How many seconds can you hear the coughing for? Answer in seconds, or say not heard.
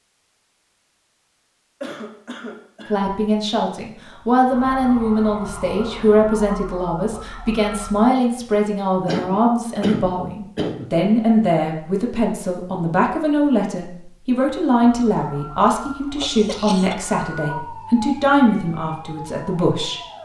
4 s.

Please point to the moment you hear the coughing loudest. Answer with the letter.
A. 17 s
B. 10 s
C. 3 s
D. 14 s
B.